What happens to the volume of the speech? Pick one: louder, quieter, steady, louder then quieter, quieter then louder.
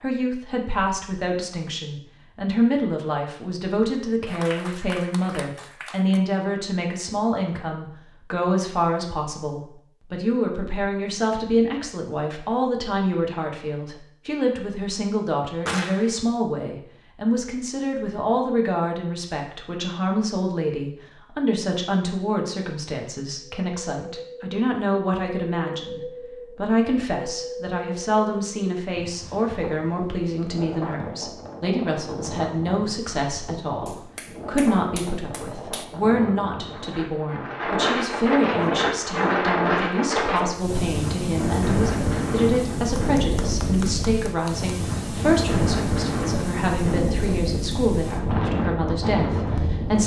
steady.